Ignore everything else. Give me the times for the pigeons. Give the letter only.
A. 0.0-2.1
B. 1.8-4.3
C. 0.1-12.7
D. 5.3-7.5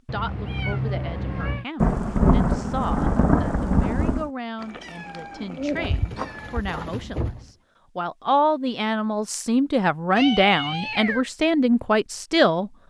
D.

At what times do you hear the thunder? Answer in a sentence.
You can hear the thunder from 1.8 to 4.3 s.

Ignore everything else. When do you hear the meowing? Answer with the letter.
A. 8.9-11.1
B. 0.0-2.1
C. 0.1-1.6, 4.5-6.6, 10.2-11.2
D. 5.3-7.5
C.